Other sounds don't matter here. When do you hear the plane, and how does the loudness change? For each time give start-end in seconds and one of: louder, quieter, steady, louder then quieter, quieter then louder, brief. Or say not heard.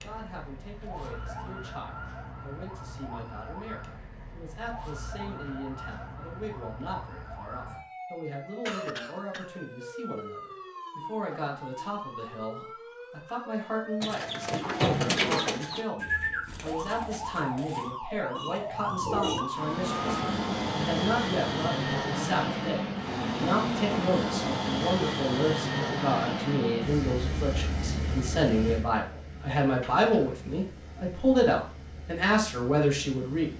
19.4-33.5 quieter.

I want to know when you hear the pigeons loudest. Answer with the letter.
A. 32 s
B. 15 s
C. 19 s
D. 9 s
B.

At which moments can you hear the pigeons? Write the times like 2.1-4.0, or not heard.
14.0-19.4.